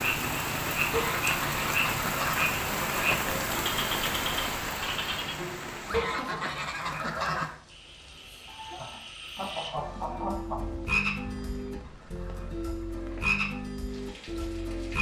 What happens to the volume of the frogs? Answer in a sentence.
The loudness of the frogs goes down, then up.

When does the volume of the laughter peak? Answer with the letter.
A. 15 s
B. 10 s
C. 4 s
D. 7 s
B.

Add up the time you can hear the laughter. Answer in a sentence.
The laughter can be heard for 2 seconds in total.